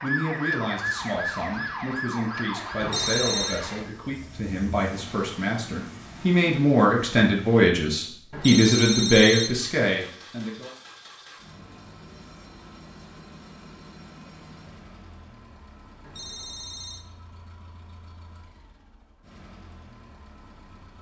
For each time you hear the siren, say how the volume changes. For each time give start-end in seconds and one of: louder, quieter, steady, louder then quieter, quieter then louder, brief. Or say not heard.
0.0-4.0 quieter.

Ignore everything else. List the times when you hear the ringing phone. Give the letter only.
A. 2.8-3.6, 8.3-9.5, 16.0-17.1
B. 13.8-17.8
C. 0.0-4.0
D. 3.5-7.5
A.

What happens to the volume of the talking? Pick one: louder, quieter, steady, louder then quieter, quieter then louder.
louder.